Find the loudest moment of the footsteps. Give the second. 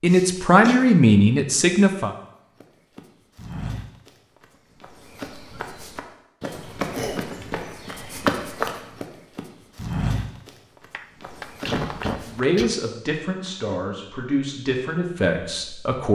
8 s.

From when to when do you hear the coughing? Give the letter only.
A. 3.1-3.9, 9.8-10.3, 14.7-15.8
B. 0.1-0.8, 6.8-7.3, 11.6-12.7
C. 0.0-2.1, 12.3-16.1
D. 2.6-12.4
B.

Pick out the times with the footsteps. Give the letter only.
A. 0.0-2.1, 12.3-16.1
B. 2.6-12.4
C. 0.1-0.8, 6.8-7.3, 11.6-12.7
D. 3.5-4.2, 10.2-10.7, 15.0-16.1
B.